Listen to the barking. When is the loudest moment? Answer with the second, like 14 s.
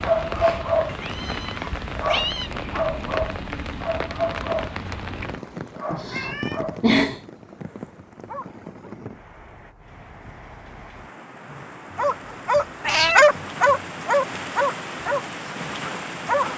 13 s.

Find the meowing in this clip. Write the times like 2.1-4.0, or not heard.
0.8-2.5, 5.9-7.3, 12.8-13.2.